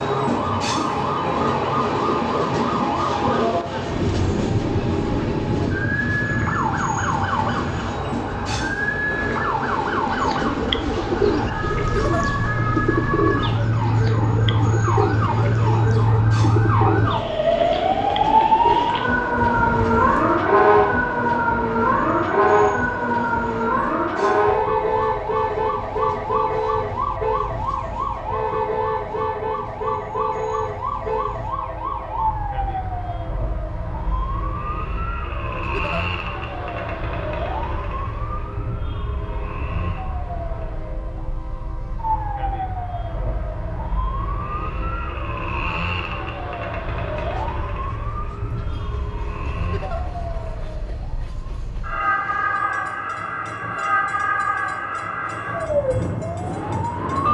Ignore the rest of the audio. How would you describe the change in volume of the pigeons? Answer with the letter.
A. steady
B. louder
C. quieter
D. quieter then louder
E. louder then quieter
C.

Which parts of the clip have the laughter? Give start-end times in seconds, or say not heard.
11.8-12.2, 35.6-36.0, 49.6-50.0.